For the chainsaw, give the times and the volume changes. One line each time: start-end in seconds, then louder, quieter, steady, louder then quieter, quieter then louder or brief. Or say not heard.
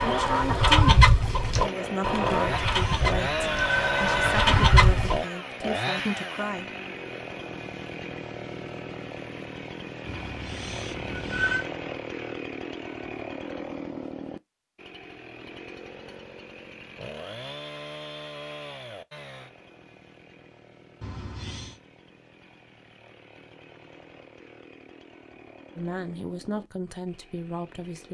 0.0-28.0 quieter.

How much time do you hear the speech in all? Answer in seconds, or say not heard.
9 s.